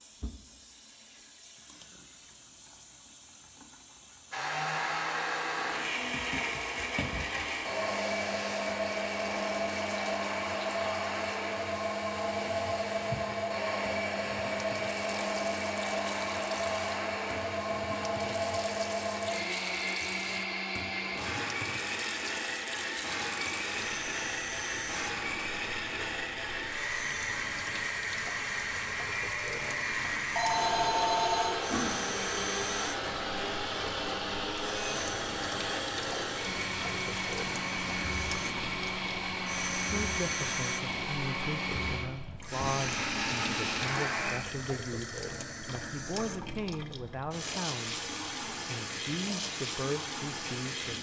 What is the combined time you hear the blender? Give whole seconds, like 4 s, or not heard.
40 s.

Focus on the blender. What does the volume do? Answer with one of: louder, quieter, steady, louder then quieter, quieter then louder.
steady.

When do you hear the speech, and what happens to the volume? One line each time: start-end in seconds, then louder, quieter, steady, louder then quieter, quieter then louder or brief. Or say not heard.
39.9-50.9 steady.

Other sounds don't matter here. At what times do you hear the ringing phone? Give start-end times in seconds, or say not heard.
30.4-32.0.